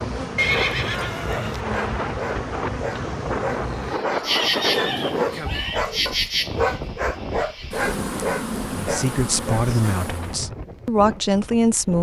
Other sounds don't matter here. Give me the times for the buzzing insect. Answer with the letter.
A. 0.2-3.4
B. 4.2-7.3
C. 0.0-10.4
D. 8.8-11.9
C.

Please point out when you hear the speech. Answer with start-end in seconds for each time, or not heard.
8.8-11.9.